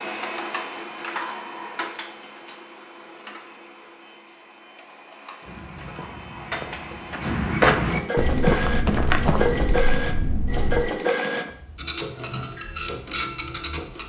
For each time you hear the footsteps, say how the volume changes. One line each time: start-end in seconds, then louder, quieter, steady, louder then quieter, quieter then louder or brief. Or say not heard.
5.4-10.9 louder then quieter.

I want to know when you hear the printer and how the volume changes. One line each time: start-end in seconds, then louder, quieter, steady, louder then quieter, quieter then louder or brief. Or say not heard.
0.0-14.0 quieter then louder.